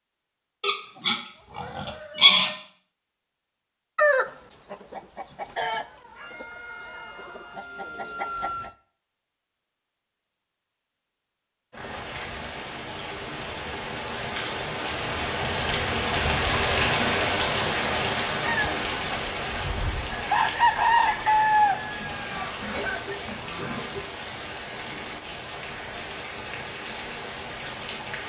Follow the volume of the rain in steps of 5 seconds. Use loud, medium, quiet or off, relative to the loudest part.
off, off, medium, loud, medium, medium.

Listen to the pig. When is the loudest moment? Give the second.
2 s.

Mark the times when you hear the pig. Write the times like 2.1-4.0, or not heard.
0.6-2.5, 22.0-24.0.